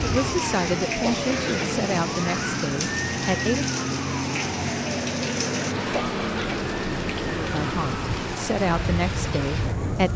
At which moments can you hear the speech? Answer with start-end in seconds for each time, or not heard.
0.0-3.9, 7.4-10.1.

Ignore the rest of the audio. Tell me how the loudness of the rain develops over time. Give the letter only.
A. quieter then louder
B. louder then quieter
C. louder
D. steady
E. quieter
D.